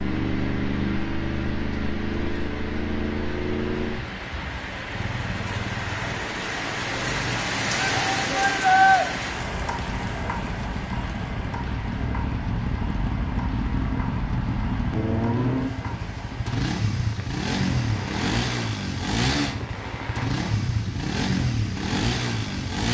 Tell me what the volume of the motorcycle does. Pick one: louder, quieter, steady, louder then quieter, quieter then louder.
quieter then louder.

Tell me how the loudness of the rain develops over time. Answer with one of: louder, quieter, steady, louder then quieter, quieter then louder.
louder then quieter.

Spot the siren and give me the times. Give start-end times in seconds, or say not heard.
not heard.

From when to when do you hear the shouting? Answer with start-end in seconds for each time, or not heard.
7.8-9.1.